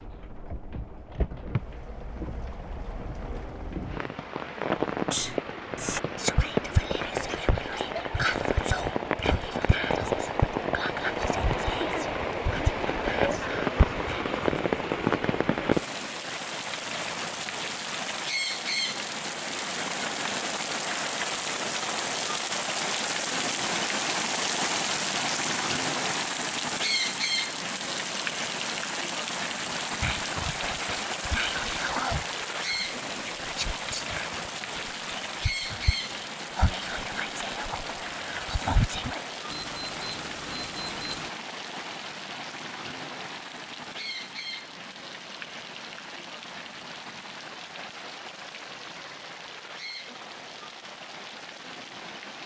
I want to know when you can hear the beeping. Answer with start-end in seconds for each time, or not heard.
39.5-41.3.